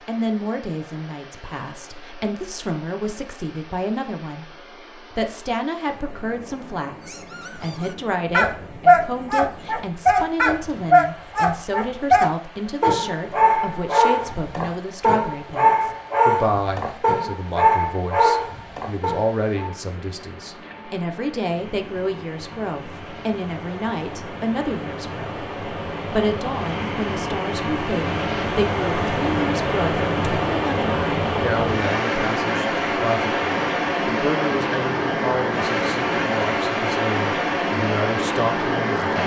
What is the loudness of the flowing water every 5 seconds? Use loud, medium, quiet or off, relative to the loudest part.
quiet, quiet, quiet, quiet, quiet, loud, loud, loud.